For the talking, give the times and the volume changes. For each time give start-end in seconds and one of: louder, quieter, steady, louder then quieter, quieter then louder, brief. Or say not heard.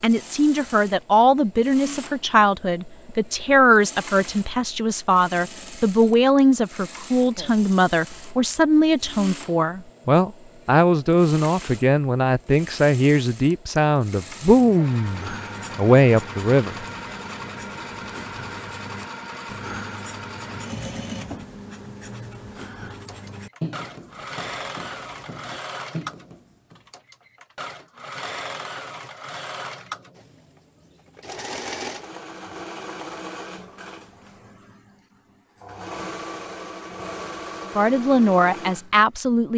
0.0-16.9 steady
37.8-39.5 brief.